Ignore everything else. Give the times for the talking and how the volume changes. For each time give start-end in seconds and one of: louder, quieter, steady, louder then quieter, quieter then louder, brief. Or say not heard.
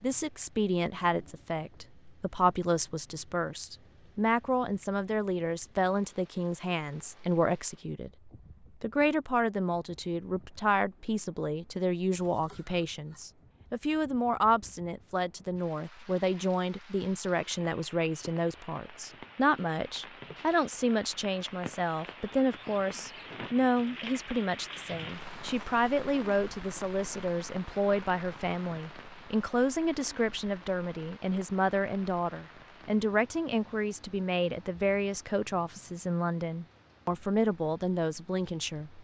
0.0-38.9 steady.